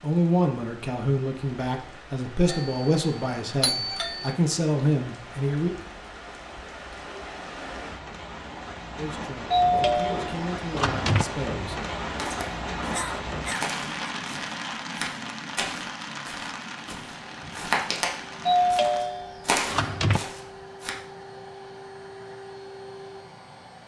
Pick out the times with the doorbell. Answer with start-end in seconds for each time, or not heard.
2.5-4.3, 9.5-11.2, 18.4-20.2.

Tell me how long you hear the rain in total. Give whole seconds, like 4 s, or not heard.
19 s.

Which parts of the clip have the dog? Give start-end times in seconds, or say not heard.
not heard.